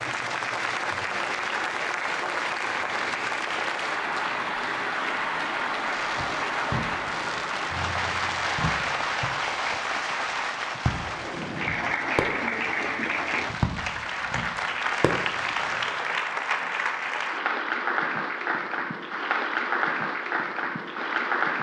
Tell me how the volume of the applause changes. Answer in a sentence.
The volume of the applause stays about the same.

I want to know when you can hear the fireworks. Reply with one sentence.
The fireworks can be heard from 5.8 to 16.1 s.